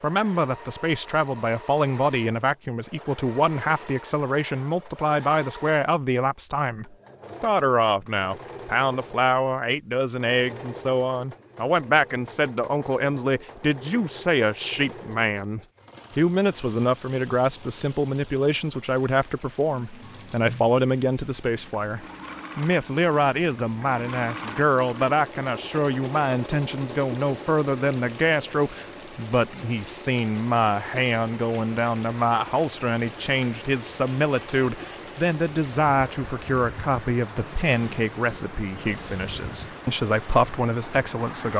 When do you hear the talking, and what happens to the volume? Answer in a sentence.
The talking can be heard from 0.0 to 41.5 s, at a steady volume.